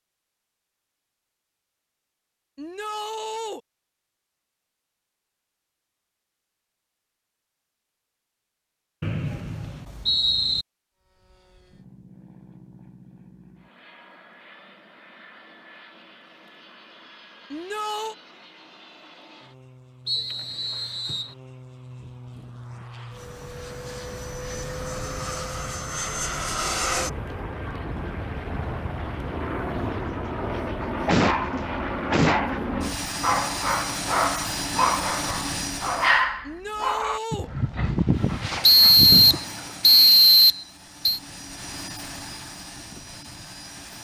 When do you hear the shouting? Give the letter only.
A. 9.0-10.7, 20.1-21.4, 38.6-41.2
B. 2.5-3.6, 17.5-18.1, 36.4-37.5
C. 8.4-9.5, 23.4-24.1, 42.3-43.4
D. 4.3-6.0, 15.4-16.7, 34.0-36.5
B.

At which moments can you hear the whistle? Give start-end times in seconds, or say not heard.
9.0-10.7, 20.1-21.4, 38.6-41.2.